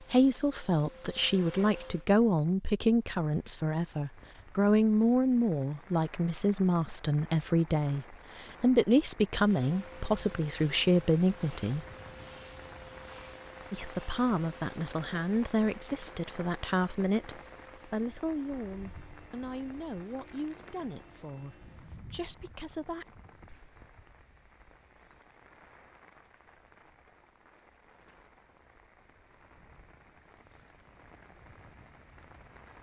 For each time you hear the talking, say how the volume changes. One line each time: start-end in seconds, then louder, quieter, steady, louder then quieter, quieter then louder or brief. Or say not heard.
0.1-11.8 steady
13.7-23.1 quieter.